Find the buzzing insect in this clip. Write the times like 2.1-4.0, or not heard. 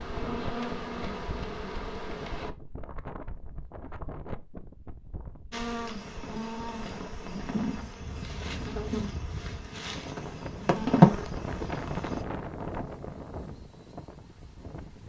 0.0-2.5, 5.5-12.2.